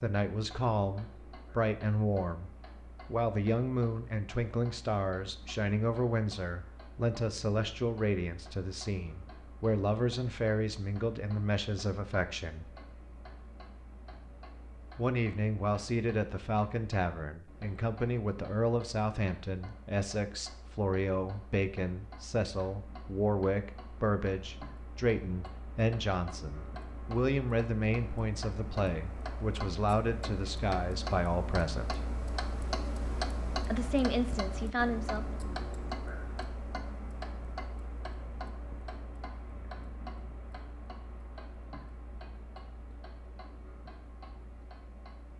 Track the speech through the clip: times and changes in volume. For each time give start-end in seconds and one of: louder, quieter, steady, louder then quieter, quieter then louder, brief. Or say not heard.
0.0-12.8 steady
14.9-32.0 steady
33.6-35.4 brief.